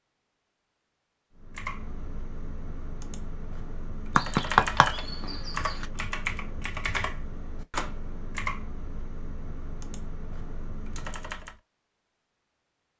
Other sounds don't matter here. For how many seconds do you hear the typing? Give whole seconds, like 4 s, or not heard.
10 s.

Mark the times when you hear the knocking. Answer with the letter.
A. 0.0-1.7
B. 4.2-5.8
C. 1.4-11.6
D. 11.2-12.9
B.